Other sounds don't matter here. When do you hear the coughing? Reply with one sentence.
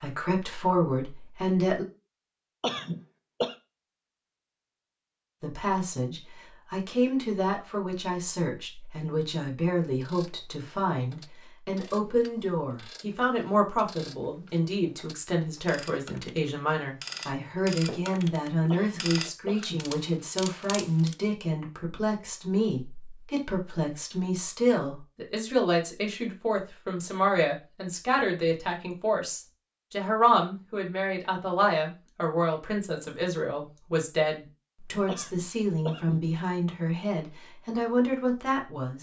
You can hear the coughing from 2.6 to 3.5 s, from 18.7 to 19.9 s and from 35.0 to 36.3 s.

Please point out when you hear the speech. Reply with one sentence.
The speech can be heard from 0.0 to 1.9 s and from 5.4 to 38.9 s.